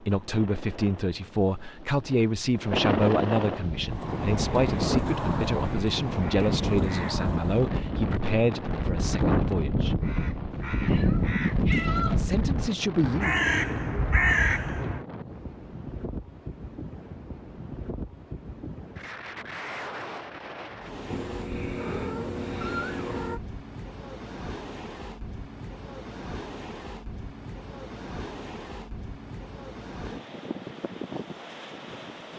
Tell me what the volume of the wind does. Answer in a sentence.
The loudness of the wind goes down.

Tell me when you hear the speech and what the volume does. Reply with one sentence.
You can hear the speech from 0.0 to 9.9 s, at a steady volume; and briefly from 12.2 to 13.3 s.